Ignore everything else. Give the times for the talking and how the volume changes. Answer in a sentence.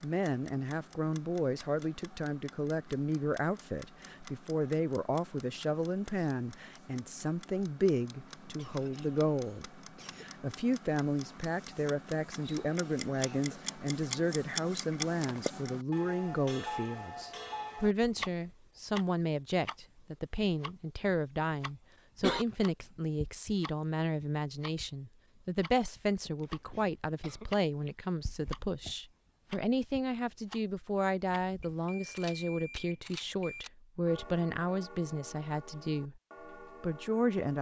You can hear the talking from 0.0 to 36.2 s, at a steady volume; and briefly from 36.8 to 37.5 s.